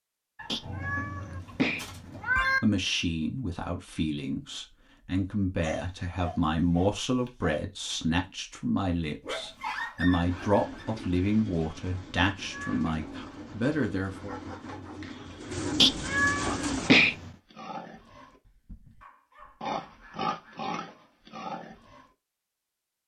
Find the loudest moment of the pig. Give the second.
20 s.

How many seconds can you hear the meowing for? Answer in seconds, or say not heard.
4 s.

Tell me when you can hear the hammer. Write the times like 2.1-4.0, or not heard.
not heard.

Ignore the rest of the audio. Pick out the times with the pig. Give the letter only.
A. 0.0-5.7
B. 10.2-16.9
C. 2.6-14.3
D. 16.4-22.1
D.